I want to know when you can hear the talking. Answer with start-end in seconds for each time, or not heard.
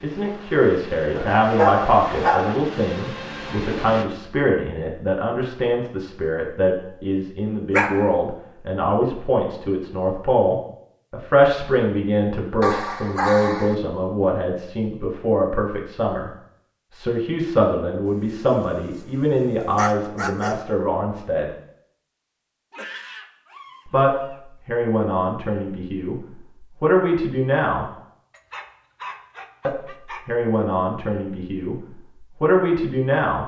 0.0-16.3, 16.9-21.5, 23.9-27.9, 29.6-33.4.